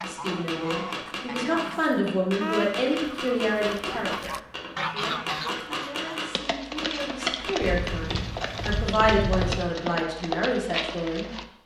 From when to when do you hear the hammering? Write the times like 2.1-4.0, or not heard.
0.0-8.2.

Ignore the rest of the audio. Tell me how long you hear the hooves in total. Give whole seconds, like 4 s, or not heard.
5 s.